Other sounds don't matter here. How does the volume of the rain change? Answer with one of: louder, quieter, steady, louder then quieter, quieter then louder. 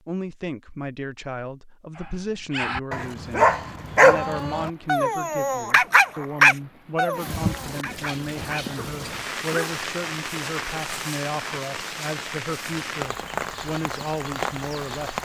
louder.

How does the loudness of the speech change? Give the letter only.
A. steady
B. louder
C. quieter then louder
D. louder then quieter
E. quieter
A.